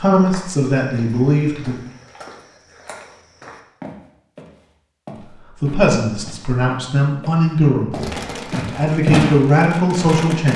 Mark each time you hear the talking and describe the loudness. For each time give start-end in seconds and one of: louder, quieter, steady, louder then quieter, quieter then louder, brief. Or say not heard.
0.0-1.8 brief
5.6-10.5 louder.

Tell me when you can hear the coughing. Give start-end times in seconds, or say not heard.
not heard.